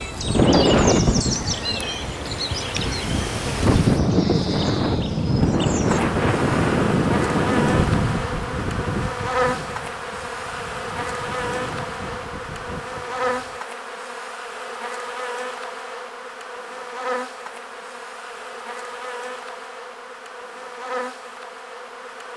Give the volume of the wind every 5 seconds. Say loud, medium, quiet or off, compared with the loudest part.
loud, loud, quiet, off, off.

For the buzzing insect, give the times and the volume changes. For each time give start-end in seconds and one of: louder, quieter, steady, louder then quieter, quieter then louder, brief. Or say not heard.
0.0-22.3 quieter.